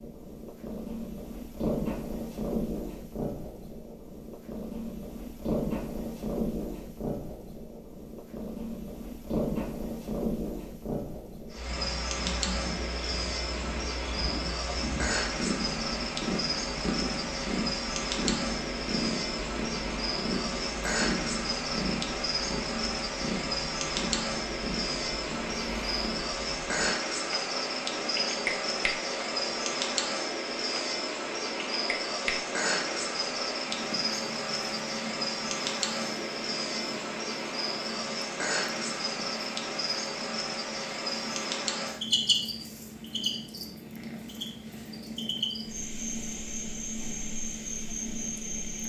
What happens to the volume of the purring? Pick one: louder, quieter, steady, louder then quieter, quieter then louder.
quieter.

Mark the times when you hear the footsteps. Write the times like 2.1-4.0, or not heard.
not heard.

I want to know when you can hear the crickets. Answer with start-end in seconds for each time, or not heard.
11.5-48.8.